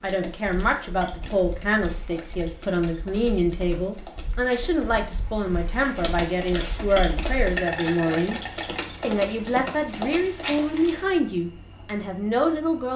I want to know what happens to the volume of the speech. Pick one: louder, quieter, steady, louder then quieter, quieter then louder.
steady.